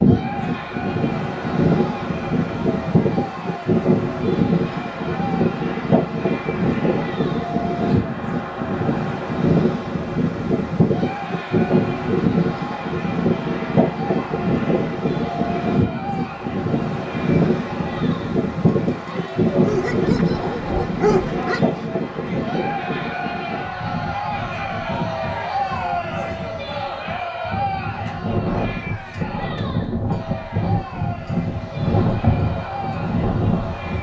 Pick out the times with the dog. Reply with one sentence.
The dog can be heard from 19.6 to 21.9 s.